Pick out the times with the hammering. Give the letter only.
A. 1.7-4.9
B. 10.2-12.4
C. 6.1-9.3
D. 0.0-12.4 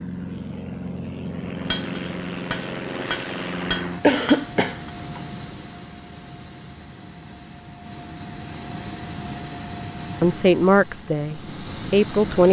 A.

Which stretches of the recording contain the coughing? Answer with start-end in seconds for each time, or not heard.
3.6-5.2.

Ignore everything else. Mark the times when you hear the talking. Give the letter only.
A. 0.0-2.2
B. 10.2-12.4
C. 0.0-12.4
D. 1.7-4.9
B.